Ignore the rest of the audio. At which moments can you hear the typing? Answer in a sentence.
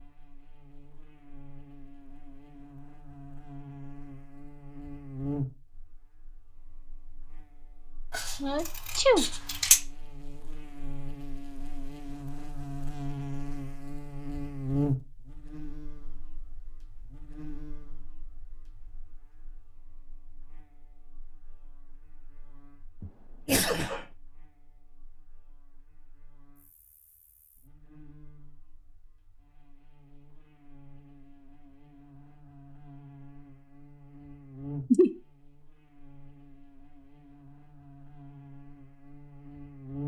You can't hear the typing here.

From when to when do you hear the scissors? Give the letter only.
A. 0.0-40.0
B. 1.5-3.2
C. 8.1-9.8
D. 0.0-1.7
C.